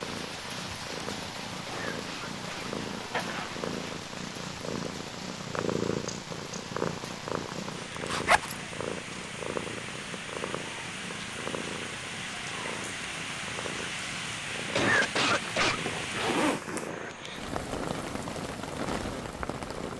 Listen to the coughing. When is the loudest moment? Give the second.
15 s.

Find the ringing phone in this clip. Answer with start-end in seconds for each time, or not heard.
not heard.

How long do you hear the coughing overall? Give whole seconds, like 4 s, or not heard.
2 s.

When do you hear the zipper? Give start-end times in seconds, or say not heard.
3.1-3.7, 8.1-8.6, 15.3-17.1.